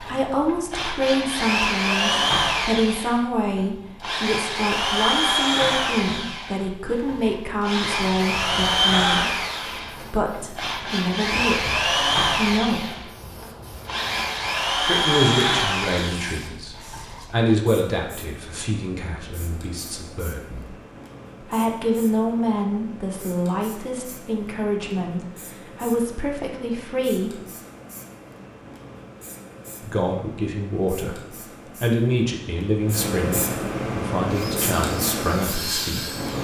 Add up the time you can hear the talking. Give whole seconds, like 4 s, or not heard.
31 s.